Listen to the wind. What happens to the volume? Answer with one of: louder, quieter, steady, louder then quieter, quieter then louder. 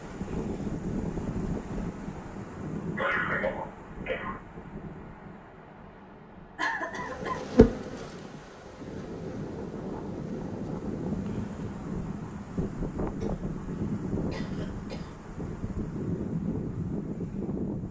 quieter then louder.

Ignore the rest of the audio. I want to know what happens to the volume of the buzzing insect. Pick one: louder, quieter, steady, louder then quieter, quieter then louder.
quieter.